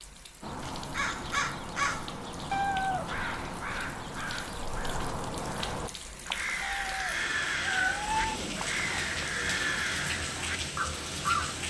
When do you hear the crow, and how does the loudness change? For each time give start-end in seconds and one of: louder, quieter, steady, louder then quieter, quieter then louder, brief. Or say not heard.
0.4-11.6 steady.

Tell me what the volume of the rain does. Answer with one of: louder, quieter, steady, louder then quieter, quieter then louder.
louder.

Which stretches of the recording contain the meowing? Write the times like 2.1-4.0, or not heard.
2.5-3.2, 6.6-8.4.